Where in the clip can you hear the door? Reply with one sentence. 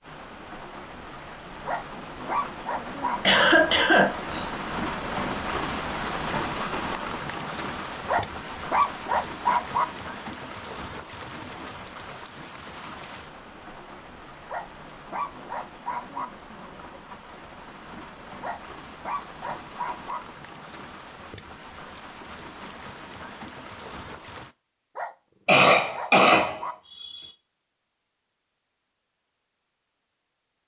The door can't be heard in this clip.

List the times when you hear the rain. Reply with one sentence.
You can hear the rain from 0.0 to 24.6 s.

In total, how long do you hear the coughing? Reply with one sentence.
The coughing can be heard for 3 seconds in total.